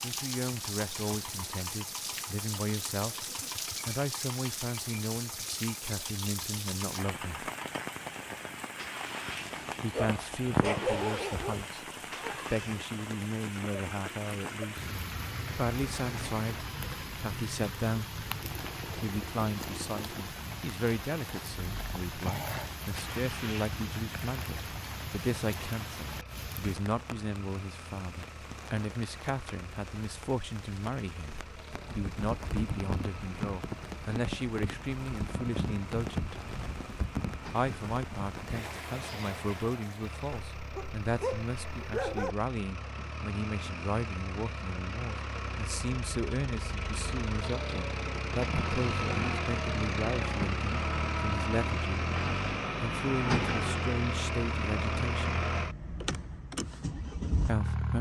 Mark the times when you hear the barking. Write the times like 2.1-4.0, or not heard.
9.9-11.7, 40.4-42.4.